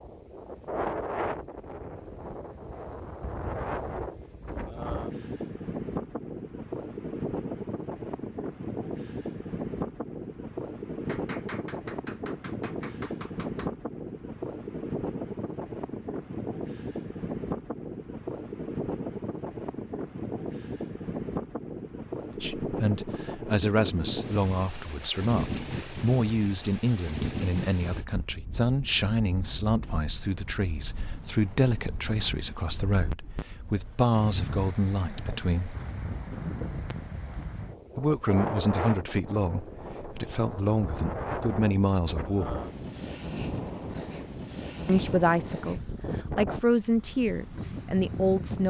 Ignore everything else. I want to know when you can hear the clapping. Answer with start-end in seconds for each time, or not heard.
11.1-13.7.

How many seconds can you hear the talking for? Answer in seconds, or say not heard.
22 s.